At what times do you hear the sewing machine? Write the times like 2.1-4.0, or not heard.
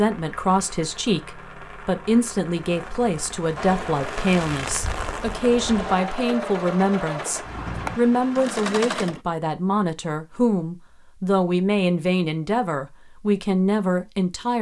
3.5-9.2.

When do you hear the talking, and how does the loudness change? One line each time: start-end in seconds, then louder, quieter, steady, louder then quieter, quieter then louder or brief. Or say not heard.
0.0-14.5 steady.